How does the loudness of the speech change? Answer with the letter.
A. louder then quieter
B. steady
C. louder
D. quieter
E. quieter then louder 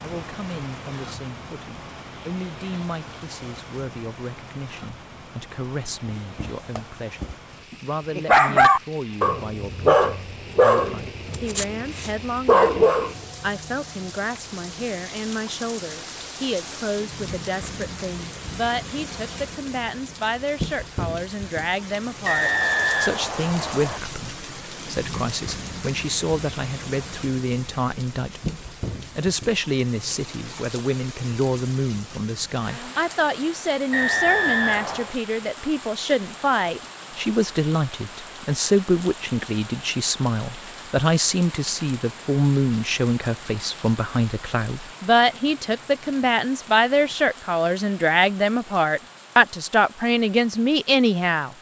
C.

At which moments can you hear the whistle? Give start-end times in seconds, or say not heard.
22.2-24.0, 33.9-35.1.